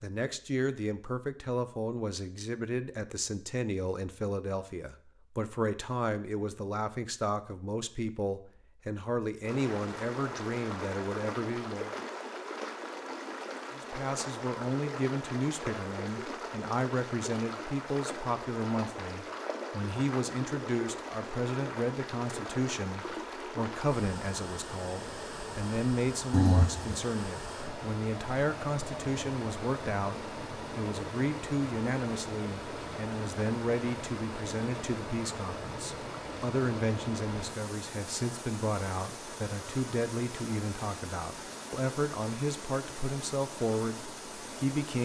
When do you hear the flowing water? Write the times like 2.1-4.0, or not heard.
9.4-45.0.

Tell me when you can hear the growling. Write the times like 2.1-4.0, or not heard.
26.3-27.0.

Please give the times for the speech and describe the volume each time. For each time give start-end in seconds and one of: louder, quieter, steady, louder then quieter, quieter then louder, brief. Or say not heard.
0.0-11.9 steady
13.7-45.0 steady.